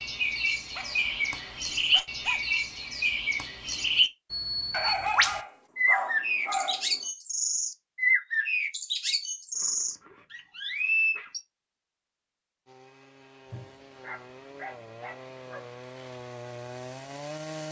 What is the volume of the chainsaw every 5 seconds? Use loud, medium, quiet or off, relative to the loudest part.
off, off, medium, loud.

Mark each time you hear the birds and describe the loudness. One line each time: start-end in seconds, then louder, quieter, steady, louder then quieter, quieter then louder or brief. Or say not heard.
0.0-11.4 steady.